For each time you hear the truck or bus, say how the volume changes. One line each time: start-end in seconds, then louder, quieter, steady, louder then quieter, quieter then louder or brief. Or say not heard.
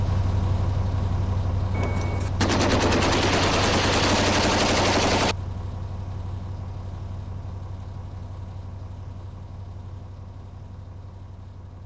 0.0-11.8 quieter.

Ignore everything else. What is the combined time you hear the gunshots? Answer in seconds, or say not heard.
4 s.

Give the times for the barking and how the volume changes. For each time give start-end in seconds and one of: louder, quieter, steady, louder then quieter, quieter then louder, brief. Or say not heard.
not heard.